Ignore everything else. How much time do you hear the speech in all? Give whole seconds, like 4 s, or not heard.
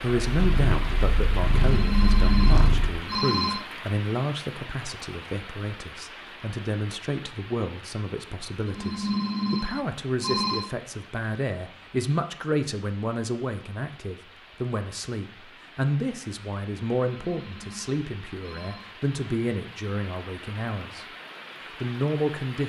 22 s.